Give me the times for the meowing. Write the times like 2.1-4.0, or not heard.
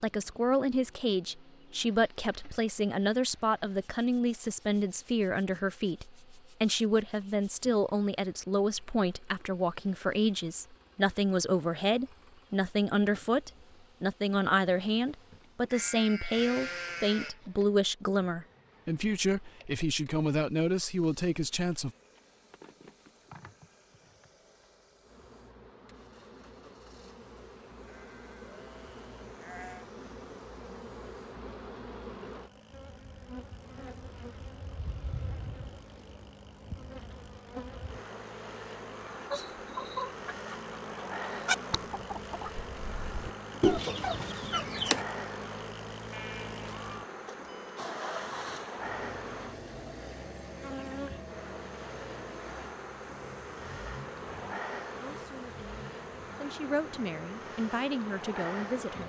not heard.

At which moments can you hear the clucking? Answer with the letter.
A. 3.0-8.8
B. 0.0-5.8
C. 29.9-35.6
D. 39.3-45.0
D.